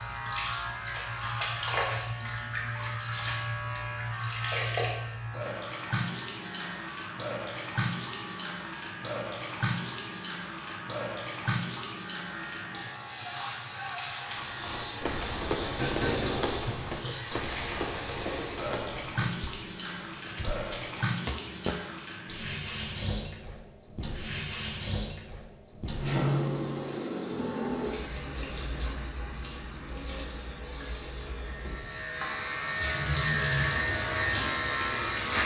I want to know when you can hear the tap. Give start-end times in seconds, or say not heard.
0.0-35.4.